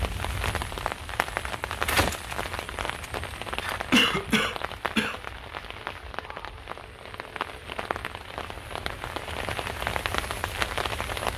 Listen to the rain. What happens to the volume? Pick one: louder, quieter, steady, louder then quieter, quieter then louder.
quieter then louder.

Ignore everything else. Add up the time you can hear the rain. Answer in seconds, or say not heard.
11 s.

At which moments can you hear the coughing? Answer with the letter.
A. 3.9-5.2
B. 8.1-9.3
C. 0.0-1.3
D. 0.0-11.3
A.